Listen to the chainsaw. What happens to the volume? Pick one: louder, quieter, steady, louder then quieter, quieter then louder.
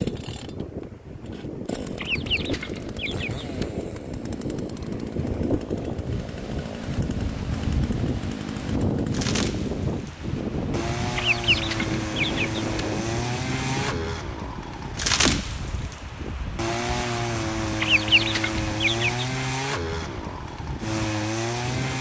louder.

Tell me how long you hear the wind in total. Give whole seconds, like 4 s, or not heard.
22 s.